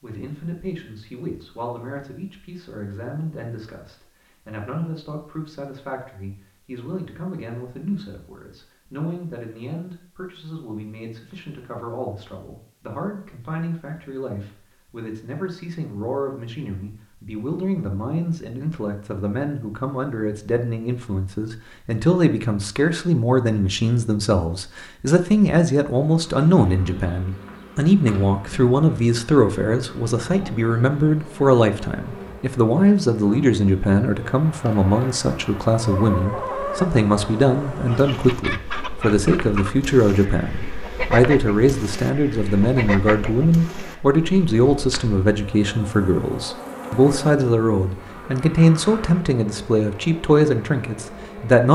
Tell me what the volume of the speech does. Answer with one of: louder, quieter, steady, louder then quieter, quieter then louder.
louder.